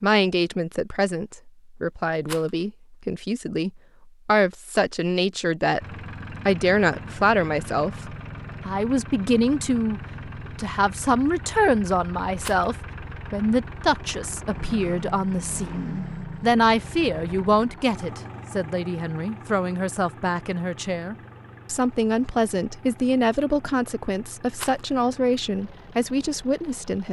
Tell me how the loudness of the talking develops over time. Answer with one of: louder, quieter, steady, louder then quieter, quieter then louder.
steady.